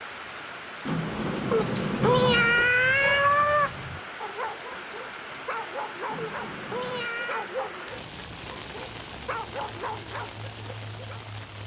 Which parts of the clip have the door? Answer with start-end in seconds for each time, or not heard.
0.8-2.7, 6.0-7.1.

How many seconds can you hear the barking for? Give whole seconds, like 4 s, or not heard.
9 s.